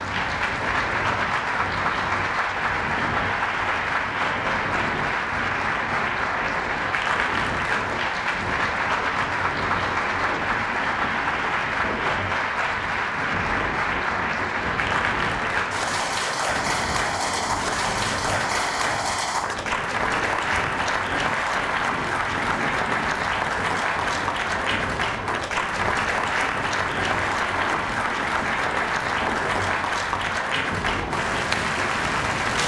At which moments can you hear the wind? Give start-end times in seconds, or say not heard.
0.0-32.6.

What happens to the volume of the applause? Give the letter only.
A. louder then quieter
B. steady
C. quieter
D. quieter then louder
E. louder
B.